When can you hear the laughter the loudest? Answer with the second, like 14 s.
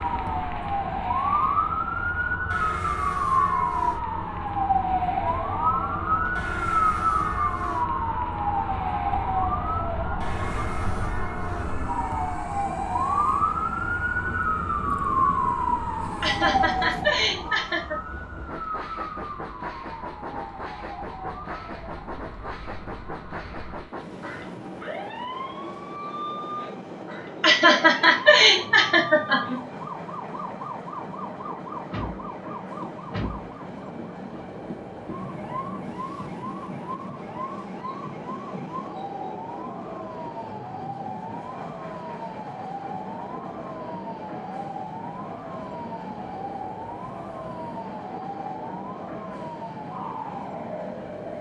28 s.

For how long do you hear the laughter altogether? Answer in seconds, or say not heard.
4 s.